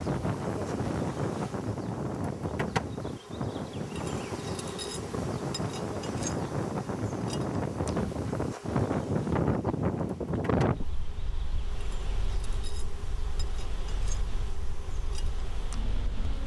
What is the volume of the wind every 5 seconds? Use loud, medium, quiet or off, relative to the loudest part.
loud, loud, medium, quiet.